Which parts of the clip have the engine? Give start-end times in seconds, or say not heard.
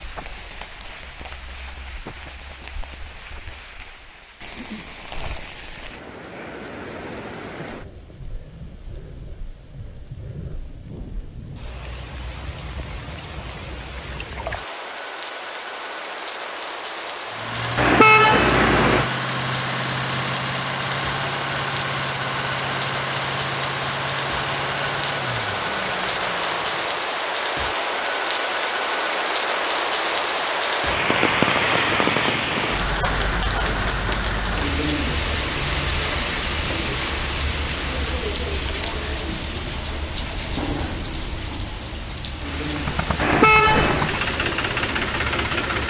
17.3-27.1, 42.6-45.8.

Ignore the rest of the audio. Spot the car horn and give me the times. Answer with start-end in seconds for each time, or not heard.
17.8-19.1, 43.1-44.1.